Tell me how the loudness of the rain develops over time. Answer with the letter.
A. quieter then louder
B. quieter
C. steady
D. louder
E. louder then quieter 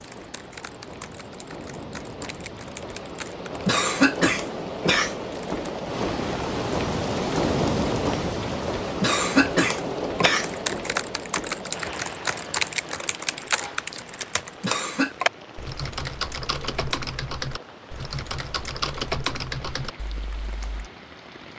E.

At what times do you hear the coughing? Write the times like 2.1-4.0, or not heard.
3.6-5.2, 9.0-10.6, 14.6-15.2.